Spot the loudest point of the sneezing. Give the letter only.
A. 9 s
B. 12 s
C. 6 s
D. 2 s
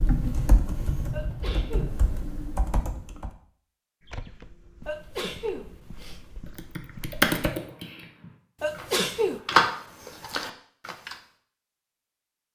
A.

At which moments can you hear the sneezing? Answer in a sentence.
The sneezing can be heard from 1.1 to 2.0 s, from 4.8 to 6.2 s and from 8.6 to 9.4 s.